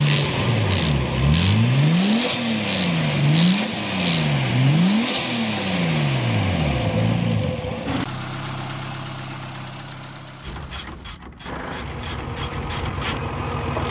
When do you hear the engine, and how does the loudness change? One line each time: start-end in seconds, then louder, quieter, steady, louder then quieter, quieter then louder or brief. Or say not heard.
0.0-13.8 quieter.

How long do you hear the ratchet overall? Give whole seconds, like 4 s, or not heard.
8 s.